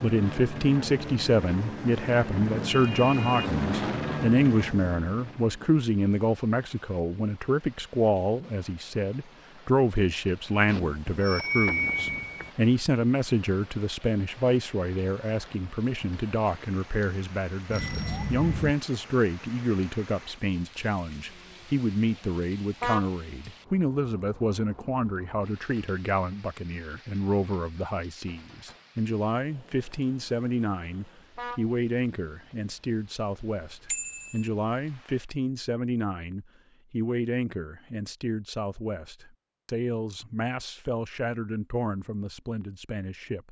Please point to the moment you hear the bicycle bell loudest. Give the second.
12 s.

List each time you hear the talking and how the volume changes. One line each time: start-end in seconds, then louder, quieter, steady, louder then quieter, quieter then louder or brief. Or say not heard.
0.0-43.4 quieter.